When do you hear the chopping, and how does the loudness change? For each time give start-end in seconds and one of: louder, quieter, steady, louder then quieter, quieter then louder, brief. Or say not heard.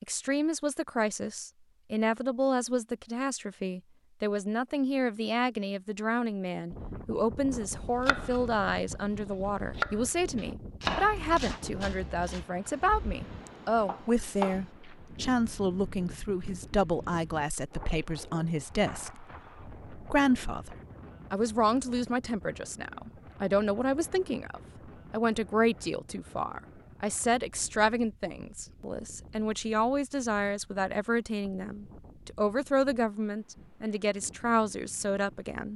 7.8-14.6 louder then quieter.